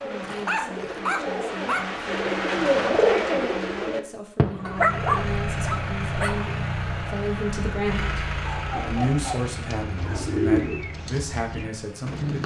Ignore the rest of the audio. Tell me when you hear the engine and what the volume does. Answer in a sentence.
The engine can be heard from 4.6 to 12.2 s, getting quieter.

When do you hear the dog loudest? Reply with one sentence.
The loudest moment of the dog is at 5 seconds.